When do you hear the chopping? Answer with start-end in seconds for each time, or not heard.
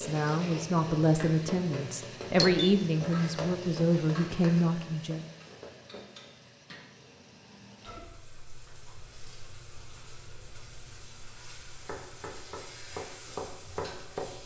11.8-14.4.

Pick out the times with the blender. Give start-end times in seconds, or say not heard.
not heard.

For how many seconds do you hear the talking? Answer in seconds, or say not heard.
5 s.